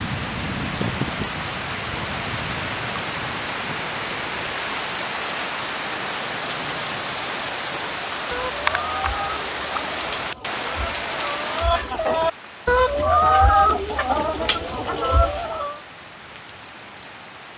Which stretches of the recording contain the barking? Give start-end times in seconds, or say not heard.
not heard.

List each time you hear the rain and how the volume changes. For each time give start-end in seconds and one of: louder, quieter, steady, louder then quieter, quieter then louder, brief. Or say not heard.
0.0-17.5 quieter.